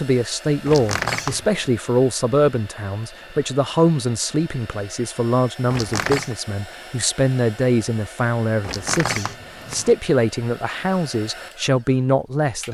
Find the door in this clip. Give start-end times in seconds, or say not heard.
0.7-1.6, 5.7-6.3, 8.6-9.9.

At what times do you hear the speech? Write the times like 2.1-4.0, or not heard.
0.0-12.6.